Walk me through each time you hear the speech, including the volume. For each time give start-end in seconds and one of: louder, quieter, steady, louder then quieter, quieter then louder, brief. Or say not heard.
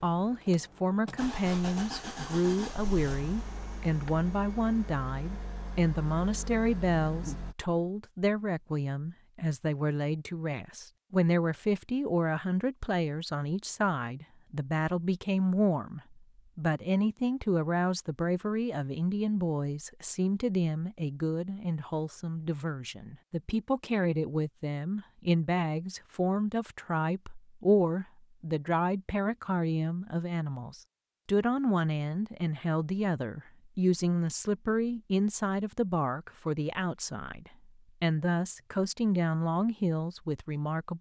0.0-40.9 steady.